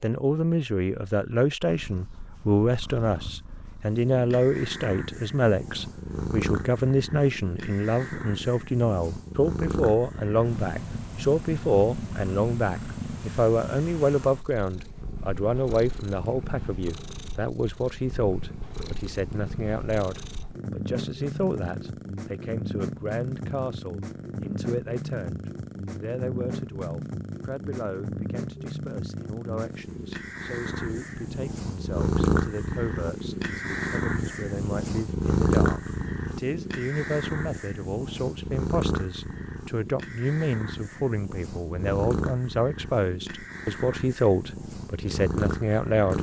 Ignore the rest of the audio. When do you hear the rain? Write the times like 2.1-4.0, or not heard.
not heard.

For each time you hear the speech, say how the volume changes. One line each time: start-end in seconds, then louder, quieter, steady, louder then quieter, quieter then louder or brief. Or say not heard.
0.0-46.1 quieter then louder.